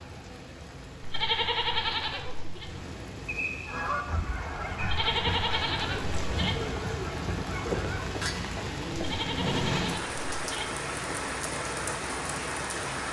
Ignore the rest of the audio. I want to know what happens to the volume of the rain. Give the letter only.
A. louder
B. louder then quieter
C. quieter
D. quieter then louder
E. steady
A.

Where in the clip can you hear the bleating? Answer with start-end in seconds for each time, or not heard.
1.0-2.6, 4.8-6.5, 8.9-10.7.